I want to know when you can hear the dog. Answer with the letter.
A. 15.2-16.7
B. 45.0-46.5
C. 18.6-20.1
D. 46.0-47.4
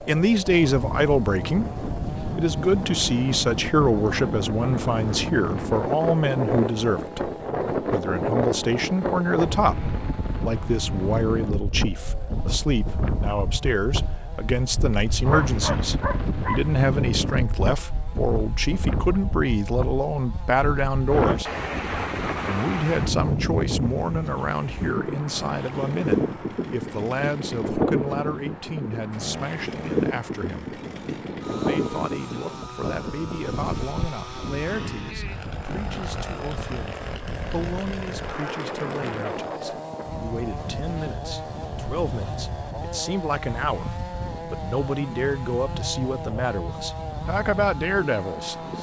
A.